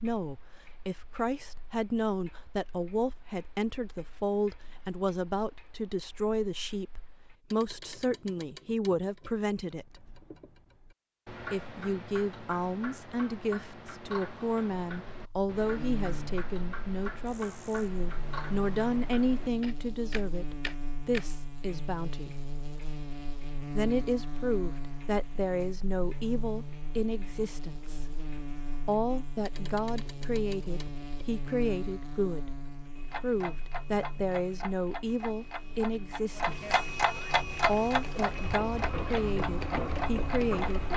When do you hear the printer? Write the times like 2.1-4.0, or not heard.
37.4-40.9.